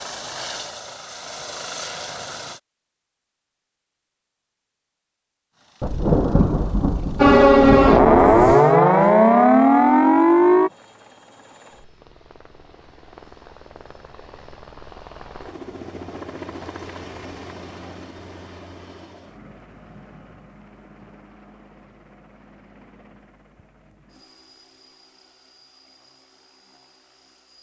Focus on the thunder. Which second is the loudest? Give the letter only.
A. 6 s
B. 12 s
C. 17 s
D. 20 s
A.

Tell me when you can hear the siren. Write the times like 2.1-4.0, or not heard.
7.2-10.7.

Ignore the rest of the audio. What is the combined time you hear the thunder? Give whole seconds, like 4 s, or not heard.
3 s.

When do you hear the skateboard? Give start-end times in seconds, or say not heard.
not heard.